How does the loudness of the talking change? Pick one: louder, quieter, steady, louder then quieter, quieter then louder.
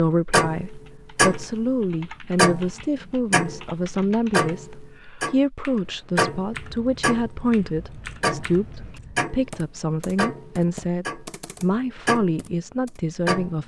steady.